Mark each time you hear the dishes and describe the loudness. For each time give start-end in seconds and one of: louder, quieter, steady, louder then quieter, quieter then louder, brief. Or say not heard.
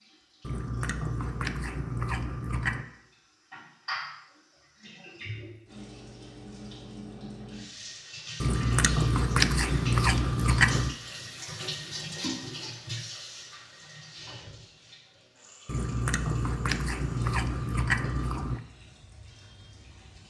not heard.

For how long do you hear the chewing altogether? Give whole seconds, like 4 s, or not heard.
8 s.